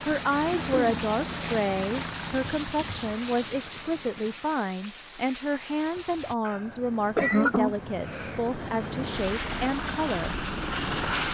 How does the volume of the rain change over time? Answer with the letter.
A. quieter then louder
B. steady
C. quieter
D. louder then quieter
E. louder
C.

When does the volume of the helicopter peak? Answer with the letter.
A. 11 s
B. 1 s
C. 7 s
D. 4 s
A.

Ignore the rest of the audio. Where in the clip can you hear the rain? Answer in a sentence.
You can hear the rain from 0.0 to 6.3 s.